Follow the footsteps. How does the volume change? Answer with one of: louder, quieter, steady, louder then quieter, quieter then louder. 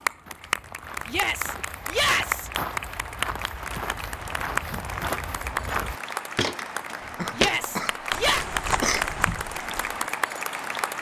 louder then quieter.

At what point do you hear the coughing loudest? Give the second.
9 s.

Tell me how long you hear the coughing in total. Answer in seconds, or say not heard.
2 s.